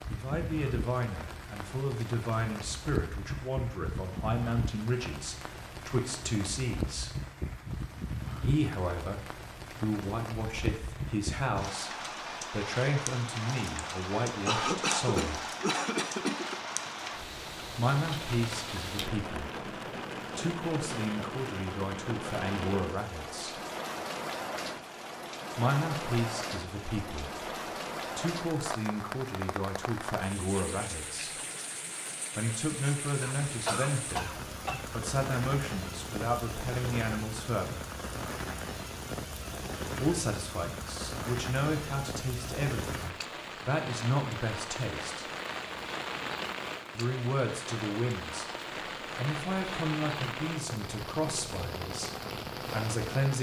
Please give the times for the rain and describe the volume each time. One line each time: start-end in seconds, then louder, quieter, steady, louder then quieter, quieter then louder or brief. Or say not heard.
0.0-53.3 steady.